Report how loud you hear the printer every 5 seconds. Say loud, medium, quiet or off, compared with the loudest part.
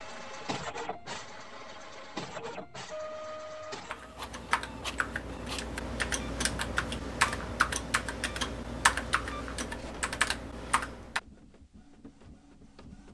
loud, medium, quiet.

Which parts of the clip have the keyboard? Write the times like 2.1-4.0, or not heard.
3.9-11.2.